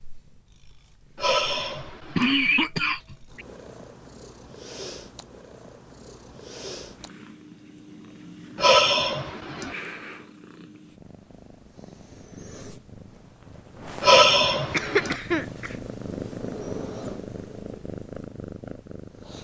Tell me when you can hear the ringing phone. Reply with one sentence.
The ringing phone can't be heard in this clip.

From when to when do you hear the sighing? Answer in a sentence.
The sighing can be heard from 1.1 to 2.4 s, from 8.6 to 9.8 s and from 14.0 to 15.2 s.